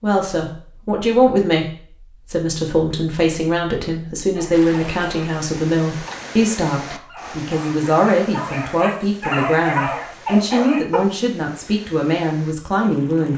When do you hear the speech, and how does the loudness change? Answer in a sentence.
You can hear the speech briefly from 0.0 to 1.6 s; and from 2.2 to 13.3 s, at a steady volume.